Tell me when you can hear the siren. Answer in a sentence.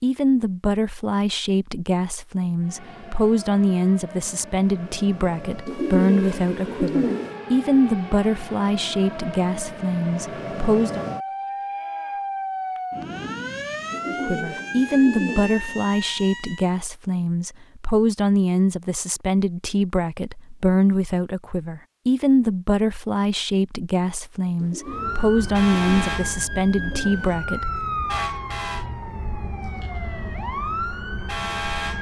The siren can be heard from 2.6 to 16.9 s and from 24.8 to 31.9 s.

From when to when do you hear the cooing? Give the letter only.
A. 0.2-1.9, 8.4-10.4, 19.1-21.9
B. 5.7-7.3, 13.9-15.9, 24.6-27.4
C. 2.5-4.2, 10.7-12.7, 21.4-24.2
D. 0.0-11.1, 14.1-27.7
B.